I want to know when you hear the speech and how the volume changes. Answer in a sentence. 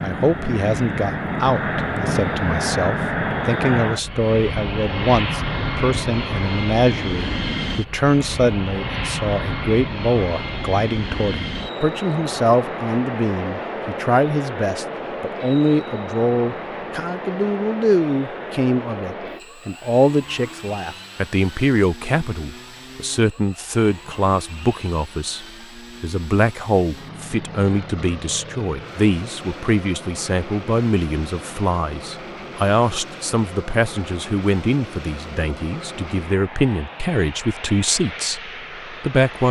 The speech can be heard from 0.0 to 39.4 s, at a steady volume.